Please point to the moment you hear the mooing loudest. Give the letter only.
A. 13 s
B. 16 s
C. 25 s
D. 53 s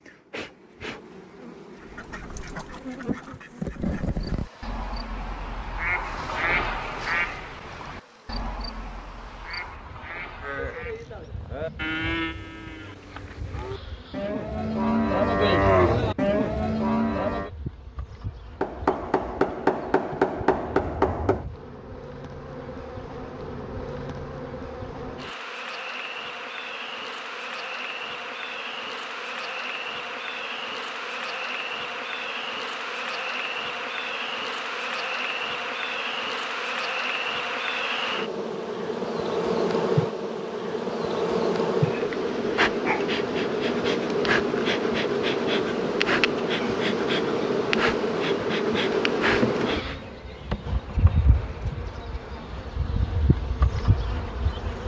B.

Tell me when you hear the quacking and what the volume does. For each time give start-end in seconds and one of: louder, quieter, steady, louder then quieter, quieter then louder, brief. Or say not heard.
1.8-11.2 louder then quieter.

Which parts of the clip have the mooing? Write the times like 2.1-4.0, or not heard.
10.4-17.5.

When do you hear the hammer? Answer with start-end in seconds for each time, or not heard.
18.6-21.4.